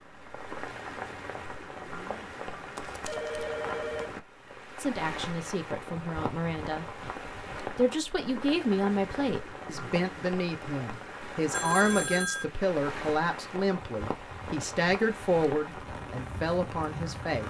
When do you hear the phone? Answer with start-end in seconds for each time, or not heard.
2.8-4.1, 11.5-12.4.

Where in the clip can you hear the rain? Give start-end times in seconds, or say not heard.
0.0-17.4.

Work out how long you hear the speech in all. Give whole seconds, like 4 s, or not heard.
12 s.